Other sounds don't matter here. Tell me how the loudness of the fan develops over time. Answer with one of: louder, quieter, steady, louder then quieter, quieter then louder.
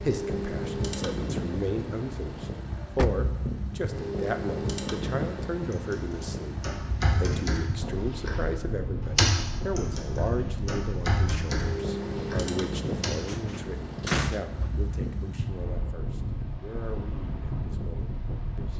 steady.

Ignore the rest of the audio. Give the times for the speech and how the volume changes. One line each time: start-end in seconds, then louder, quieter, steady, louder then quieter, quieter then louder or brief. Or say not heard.
0.0-18.7 quieter.